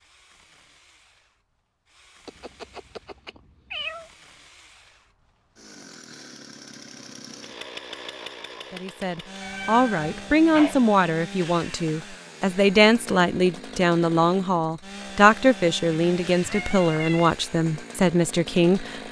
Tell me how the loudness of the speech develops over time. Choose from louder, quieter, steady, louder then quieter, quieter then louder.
steady.